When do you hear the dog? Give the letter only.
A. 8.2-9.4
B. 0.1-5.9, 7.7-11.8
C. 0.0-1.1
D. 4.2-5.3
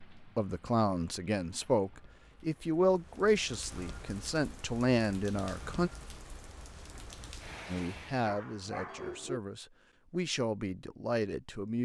A.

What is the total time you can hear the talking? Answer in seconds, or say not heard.
10 s.